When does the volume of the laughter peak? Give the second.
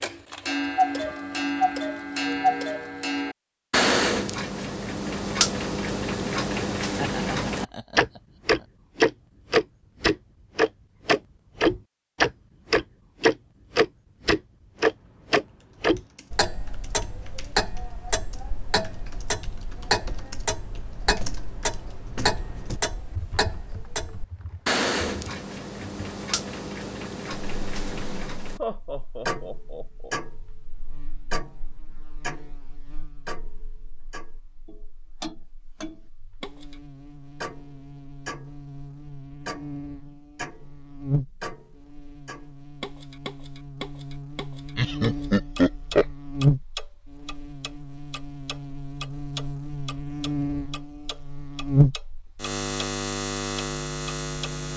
45 s.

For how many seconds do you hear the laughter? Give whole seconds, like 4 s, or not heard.
5 s.